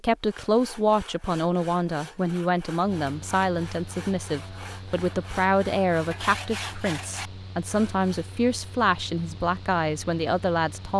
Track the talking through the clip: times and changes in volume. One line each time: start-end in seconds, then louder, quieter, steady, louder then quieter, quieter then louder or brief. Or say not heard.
0.0-10.9 steady.